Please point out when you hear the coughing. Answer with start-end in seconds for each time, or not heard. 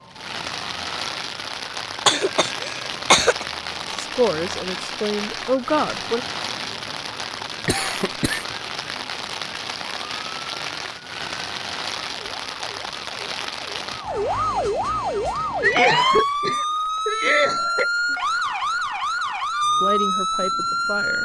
2.0-3.5, 7.7-8.4, 15.6-18.1.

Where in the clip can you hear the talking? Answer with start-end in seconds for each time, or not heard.
4.0-6.2, 19.8-21.2.